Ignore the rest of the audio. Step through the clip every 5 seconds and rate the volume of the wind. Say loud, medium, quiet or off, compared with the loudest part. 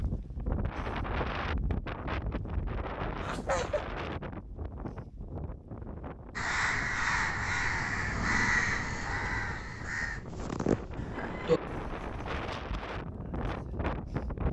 loud, medium, loud.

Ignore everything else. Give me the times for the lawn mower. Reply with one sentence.
You can't hear the lawn mower here.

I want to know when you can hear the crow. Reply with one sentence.
The crow can be heard from 6.3 to 12.4 s.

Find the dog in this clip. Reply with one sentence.
The dog can't be heard in this clip.